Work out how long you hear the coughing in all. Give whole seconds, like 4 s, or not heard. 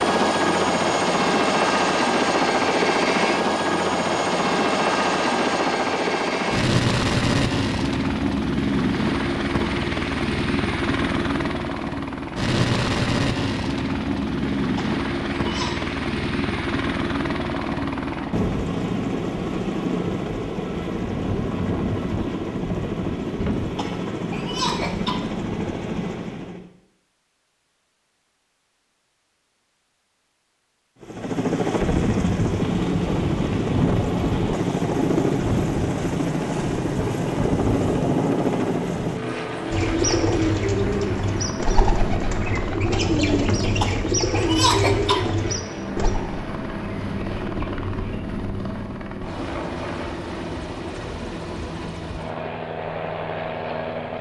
5 s.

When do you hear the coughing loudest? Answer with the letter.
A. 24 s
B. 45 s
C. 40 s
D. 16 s
B.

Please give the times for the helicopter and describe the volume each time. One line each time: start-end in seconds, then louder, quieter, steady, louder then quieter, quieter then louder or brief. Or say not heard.
0.0-26.7 quieter
31.0-54.1 quieter.